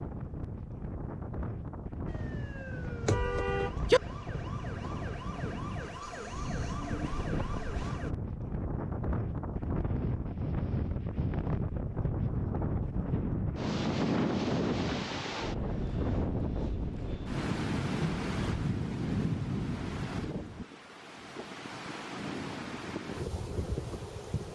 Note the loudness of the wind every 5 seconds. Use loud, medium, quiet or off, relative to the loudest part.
medium, medium, loud, loud, medium.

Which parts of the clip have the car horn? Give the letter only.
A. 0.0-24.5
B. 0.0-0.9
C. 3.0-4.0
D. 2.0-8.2
C.